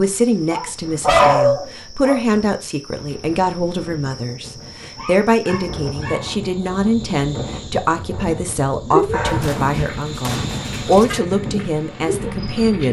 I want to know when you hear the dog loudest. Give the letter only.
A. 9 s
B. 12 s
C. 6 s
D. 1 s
D.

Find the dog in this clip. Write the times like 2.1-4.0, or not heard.
0.5-2.2, 5.0-6.3, 9.1-11.2.